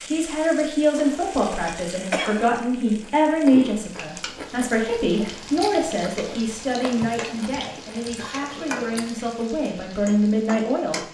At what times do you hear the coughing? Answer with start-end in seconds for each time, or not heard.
0.9-2.6, 8.0-9.1.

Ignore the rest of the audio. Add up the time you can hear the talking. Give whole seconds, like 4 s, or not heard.
11 s.